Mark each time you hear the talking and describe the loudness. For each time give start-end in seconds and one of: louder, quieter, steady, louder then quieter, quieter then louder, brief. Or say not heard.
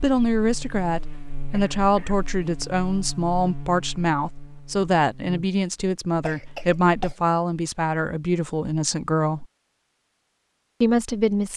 0.0-9.4 steady
10.8-11.5 brief.